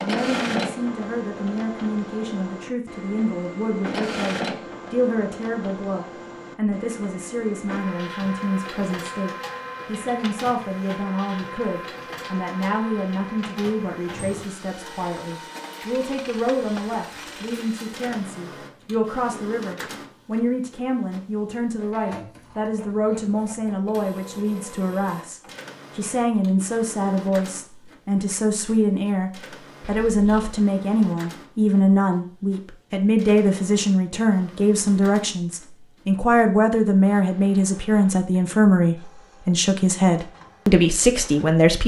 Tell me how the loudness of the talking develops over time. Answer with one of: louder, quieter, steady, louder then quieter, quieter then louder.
louder.